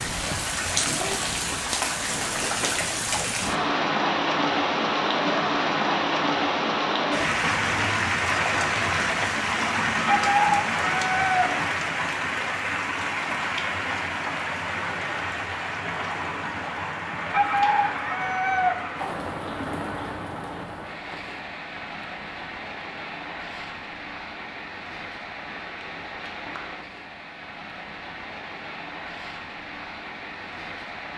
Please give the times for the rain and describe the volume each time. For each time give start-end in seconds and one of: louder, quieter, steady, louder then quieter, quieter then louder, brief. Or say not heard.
0.0-31.1 quieter.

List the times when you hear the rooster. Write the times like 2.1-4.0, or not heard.
10.1-11.6, 17.3-18.9.